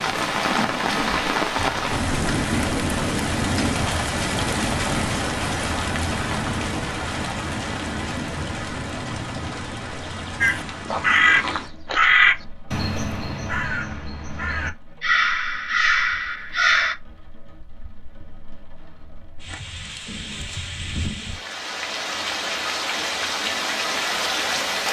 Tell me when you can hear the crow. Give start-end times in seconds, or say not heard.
10.4-16.9.